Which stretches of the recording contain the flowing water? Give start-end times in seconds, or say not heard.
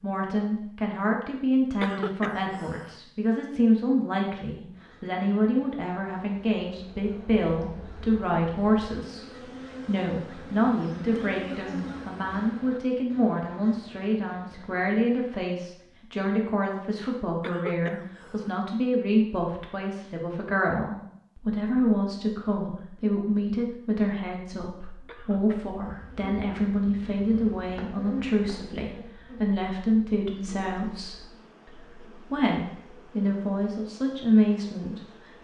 not heard.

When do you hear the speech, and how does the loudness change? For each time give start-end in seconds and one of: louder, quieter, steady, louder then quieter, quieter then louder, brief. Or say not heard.
0.0-35.3 steady.